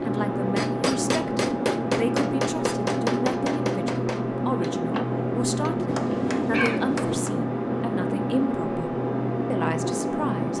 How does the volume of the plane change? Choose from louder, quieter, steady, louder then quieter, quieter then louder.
steady.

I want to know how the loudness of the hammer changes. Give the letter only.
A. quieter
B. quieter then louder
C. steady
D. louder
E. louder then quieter
B.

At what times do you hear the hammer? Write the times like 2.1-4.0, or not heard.
0.6-7.3.